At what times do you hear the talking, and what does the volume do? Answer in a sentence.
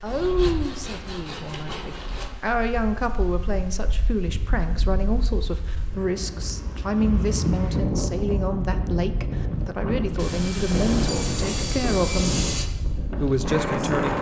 The talking can be heard from 0.0 to 12.4 s, at a steady volume; and briefly from 13.2 to 14.1 s.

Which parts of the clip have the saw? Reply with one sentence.
You can hear the saw from 0.1 to 2.3 s and from 10.2 to 12.7 s.